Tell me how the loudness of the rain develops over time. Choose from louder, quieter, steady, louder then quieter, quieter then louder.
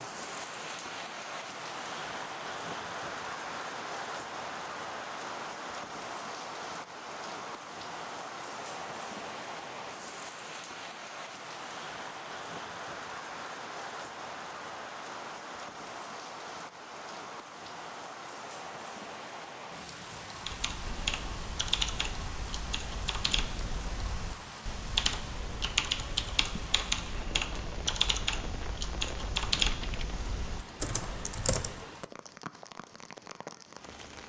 quieter.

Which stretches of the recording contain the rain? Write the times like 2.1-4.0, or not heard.
0.0-34.2.